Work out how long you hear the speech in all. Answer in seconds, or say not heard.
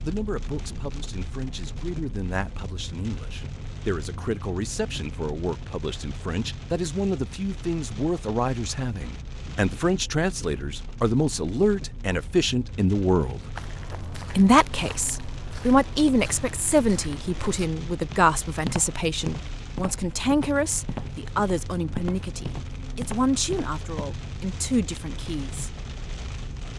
25 s.